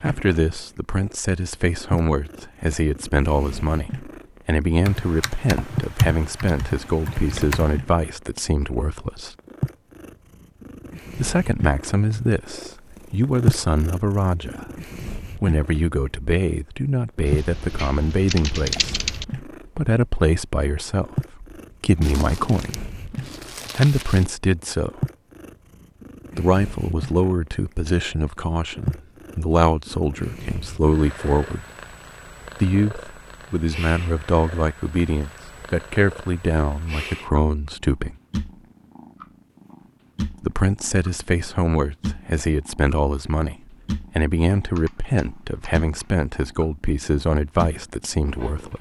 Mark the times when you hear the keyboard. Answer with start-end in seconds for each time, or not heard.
4.8-7.8, 17.2-19.2, 44.5-46.1.